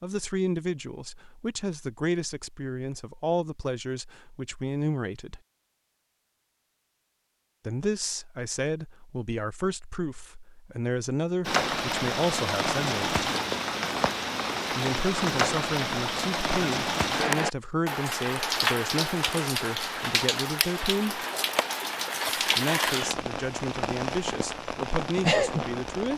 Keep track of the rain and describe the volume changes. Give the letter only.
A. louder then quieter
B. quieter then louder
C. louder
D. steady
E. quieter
D.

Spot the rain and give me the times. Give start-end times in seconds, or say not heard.
11.4-26.1.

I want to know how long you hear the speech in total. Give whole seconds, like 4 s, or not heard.
21 s.